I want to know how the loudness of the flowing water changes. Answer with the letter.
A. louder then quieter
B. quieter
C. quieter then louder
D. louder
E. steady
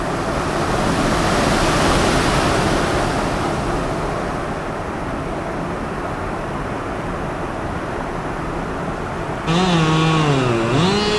B.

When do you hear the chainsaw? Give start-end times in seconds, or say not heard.
9.4-11.1.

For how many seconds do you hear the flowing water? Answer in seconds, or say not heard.
11 s.